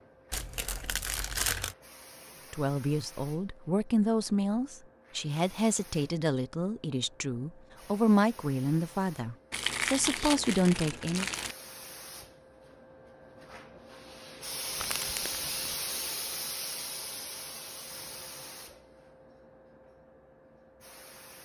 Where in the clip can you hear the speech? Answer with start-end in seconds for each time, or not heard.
2.5-11.3.